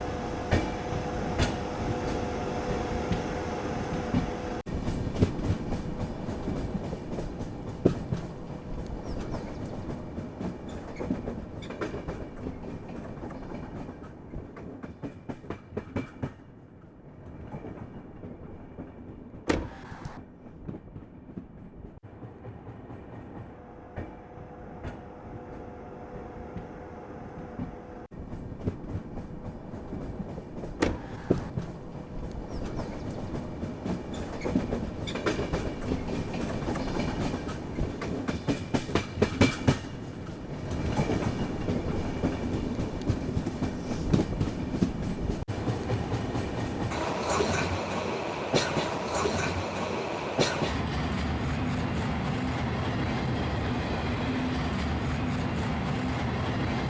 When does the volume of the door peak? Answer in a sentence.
The loudest moment of the door is at 31 seconds.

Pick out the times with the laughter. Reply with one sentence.
The laughter can't be heard in this clip.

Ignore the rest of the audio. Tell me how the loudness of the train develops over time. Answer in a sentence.
The loudness of the train goes down, then up.